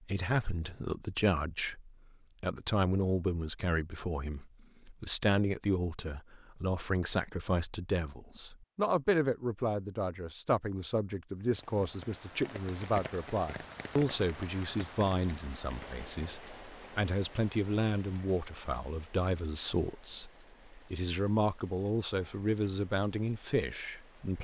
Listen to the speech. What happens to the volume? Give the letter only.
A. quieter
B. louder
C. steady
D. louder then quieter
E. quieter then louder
C.